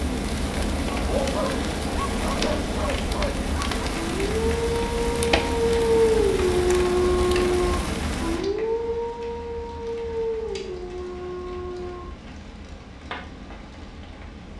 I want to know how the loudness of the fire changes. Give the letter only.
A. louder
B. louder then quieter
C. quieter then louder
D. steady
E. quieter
E.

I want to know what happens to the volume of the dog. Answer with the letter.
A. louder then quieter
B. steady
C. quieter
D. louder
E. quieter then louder
A.